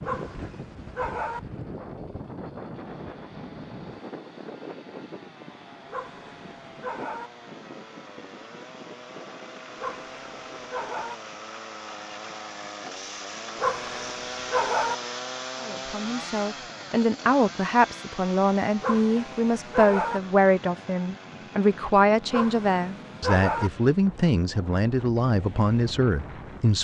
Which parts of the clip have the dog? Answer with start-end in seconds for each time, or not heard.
0.0-1.4, 5.9-7.3, 9.8-11.2, 13.6-14.9, 18.8-20.2, 22.3-23.7.